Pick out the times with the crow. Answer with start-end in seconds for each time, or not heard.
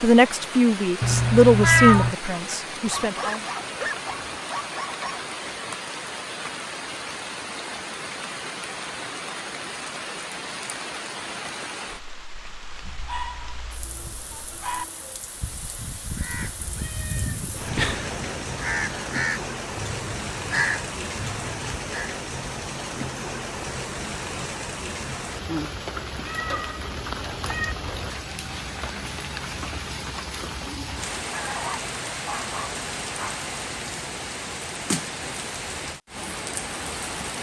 16.1-22.1.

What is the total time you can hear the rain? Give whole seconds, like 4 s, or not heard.
37 s.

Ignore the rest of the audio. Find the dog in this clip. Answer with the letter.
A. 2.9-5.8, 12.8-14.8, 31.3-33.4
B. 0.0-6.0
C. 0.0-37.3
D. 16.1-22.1
A.